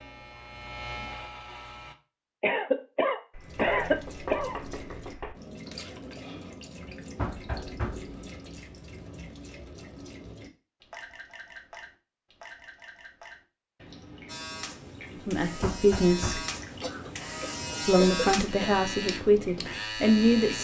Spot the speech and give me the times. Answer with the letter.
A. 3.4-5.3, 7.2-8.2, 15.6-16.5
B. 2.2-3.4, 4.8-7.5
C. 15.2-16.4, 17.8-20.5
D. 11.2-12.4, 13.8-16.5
C.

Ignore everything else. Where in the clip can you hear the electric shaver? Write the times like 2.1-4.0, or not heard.
0.0-1.9, 14.2-20.5.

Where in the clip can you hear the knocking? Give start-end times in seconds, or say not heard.
3.4-5.3, 7.2-8.2, 15.6-16.5.